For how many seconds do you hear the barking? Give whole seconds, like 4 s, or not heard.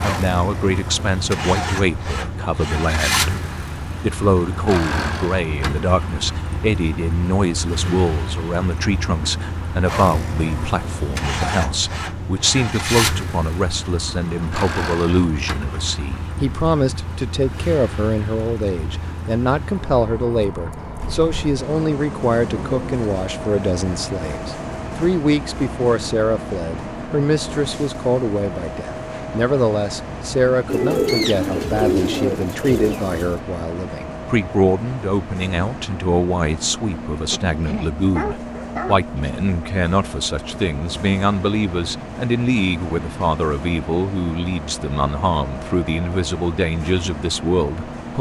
2 s.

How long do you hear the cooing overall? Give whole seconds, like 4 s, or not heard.
3 s.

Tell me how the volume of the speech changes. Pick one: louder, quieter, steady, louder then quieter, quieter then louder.
steady.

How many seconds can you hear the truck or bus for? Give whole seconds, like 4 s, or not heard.
48 s.